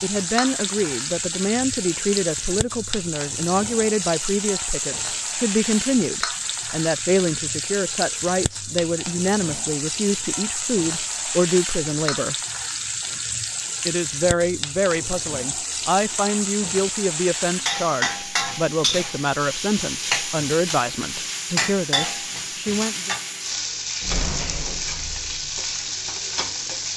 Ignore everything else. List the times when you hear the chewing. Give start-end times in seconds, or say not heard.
not heard.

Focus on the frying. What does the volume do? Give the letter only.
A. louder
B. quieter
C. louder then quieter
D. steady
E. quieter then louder
D.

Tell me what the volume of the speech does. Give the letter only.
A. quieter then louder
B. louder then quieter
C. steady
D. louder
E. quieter
C.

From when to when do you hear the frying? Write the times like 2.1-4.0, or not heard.
0.0-26.9.